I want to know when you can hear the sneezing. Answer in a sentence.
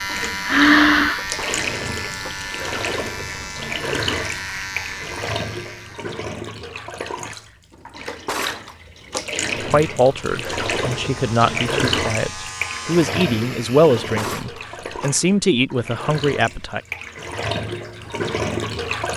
The sneezing can be heard from 0.1 to 1.2 s.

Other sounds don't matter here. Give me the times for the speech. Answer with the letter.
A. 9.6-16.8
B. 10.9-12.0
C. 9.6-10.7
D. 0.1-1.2
A.